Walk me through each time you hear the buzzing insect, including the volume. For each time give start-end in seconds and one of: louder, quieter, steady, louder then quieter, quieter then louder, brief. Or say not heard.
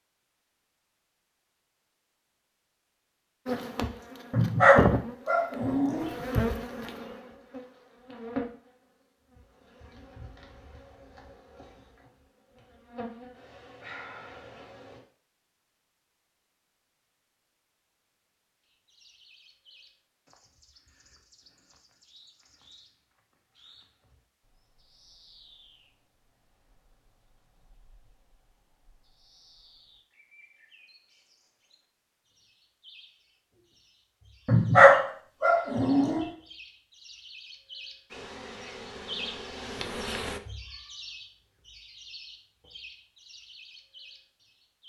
3.5-15.0 quieter then louder
38.1-40.4 brief.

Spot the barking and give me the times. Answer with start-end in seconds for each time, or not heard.
4.3-6.1, 34.5-36.2.